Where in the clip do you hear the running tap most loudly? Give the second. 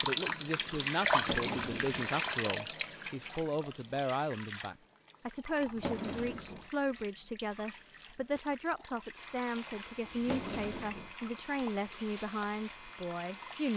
1 s.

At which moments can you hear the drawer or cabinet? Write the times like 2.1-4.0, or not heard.
1.1-2.0, 5.6-6.7, 10.1-11.2.